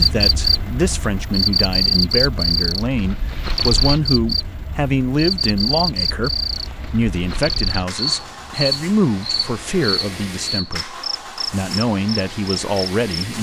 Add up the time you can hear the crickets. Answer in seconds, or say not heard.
13 s.